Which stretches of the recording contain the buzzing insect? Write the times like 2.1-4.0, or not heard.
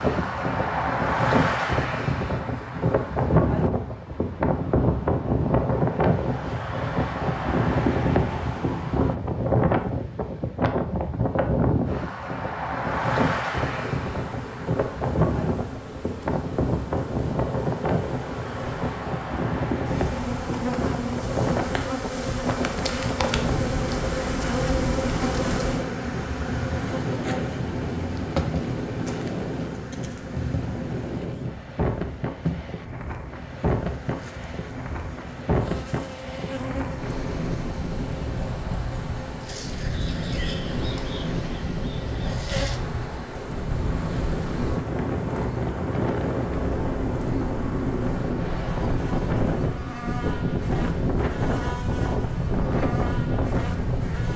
13.6-54.3.